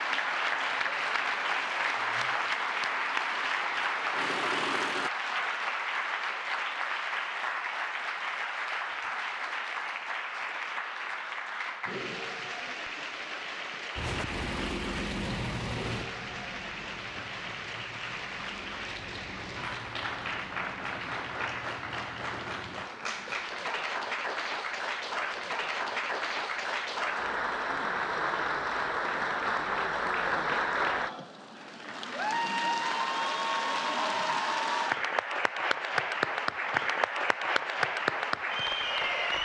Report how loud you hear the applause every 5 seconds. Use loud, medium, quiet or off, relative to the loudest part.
loud, loud, medium, medium, medium, loud, loud, loud.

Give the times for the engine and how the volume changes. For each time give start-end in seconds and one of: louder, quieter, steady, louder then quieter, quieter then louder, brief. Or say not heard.
0.0-5.1 louder
13.9-23.4 quieter.